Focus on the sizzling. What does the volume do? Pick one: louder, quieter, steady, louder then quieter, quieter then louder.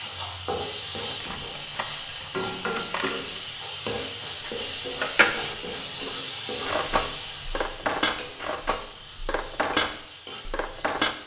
quieter.